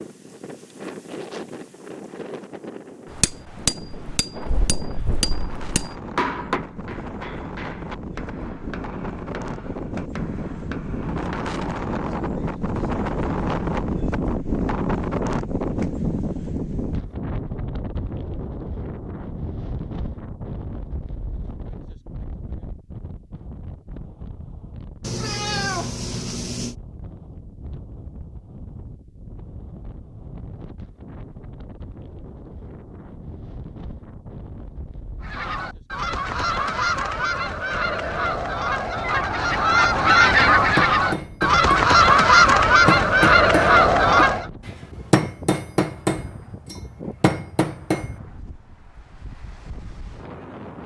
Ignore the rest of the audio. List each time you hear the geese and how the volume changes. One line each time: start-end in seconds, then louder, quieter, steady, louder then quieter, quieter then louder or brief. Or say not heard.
35.2-44.5 louder.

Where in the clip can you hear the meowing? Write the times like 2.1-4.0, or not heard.
25.0-26.8.